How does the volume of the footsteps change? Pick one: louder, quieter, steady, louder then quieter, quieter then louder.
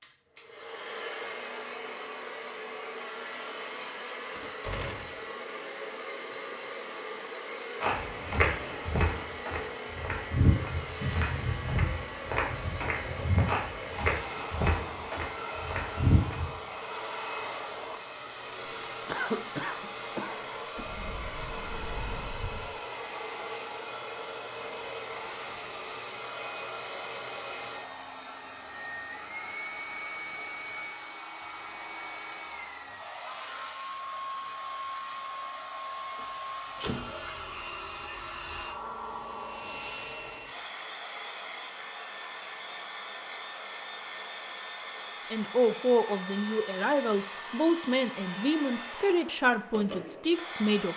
steady.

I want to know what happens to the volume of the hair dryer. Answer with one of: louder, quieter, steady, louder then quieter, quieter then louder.
steady.